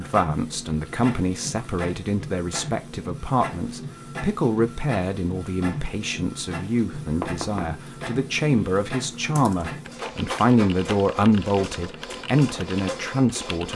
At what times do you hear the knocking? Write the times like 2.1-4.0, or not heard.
7.2-7.8.